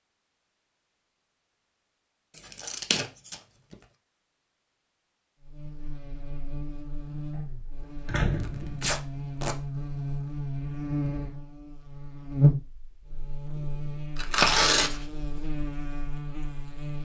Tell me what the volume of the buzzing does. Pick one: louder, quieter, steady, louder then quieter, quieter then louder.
louder then quieter.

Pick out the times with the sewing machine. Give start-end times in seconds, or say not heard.
not heard.